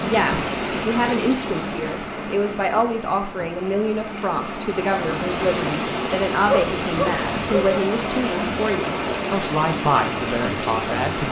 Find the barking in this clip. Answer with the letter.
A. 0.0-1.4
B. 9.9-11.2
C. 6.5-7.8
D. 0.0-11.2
C.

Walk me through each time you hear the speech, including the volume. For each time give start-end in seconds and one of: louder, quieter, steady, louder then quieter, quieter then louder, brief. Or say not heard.
0.0-11.2 steady.